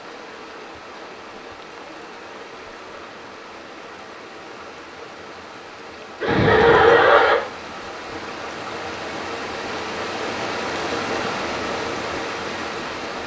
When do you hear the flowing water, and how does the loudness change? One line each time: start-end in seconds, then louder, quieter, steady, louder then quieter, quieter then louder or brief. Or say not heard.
0.0-13.2 louder.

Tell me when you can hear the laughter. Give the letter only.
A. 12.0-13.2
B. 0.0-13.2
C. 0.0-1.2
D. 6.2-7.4
D.